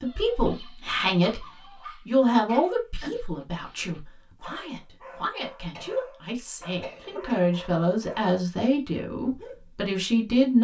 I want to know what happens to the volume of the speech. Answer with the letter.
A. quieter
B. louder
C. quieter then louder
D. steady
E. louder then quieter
C.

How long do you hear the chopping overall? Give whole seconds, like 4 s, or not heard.
not heard.